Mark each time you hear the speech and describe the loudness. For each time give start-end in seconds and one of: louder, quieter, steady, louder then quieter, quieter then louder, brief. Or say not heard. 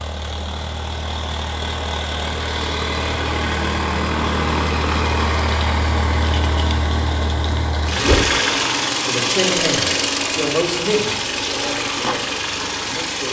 9.1-13.2 quieter.